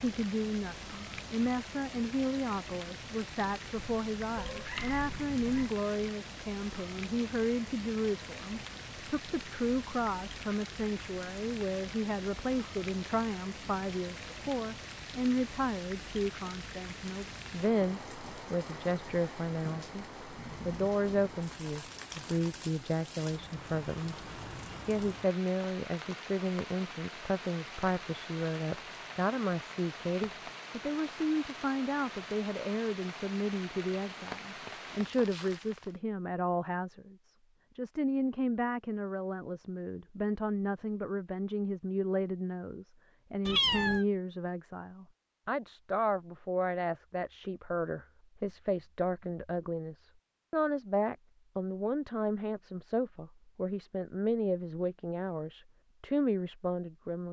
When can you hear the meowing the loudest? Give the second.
44 s.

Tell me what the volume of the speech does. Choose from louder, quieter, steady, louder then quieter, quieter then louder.
steady.